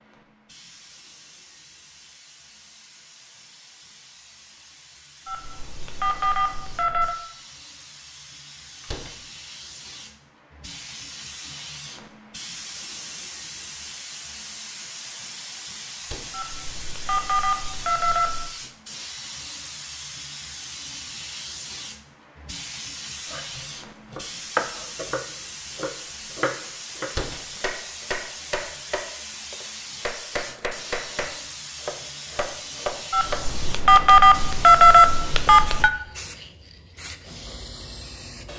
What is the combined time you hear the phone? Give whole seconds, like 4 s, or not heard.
7 s.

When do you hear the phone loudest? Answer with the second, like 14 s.
35 s.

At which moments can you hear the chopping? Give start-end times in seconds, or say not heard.
23.2-33.5.